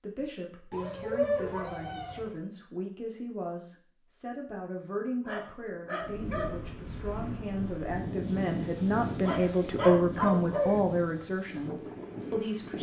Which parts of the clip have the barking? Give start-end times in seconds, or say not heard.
0.7-2.3, 5.2-6.8, 9.2-10.8.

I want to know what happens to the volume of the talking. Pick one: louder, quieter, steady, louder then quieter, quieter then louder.
louder.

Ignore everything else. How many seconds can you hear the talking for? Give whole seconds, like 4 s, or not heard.
13 s.